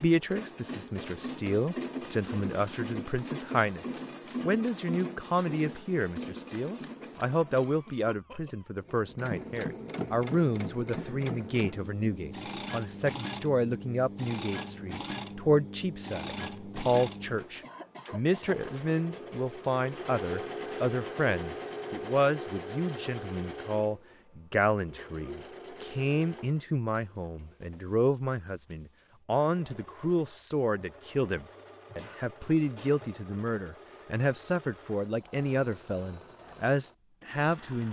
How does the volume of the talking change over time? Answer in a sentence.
The loudness of the talking stays about the same.